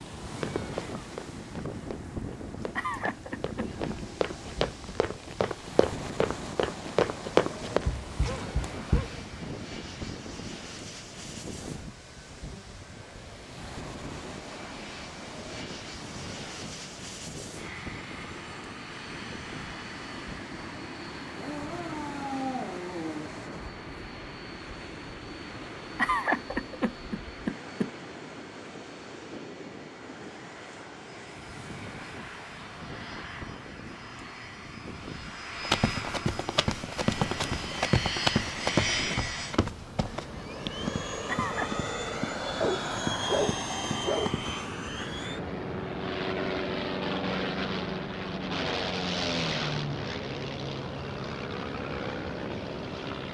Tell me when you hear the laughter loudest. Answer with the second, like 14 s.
26 s.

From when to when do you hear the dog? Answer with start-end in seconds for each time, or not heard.
7.7-9.2, 21.4-23.3, 42.6-44.3.